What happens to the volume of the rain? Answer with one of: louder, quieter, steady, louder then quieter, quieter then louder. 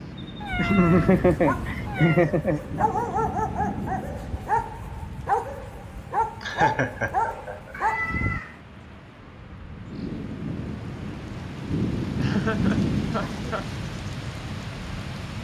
quieter then louder.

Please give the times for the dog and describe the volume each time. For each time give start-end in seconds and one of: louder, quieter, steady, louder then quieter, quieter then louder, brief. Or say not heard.
0.5-8.4 louder.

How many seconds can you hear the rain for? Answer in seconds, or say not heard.
15 s.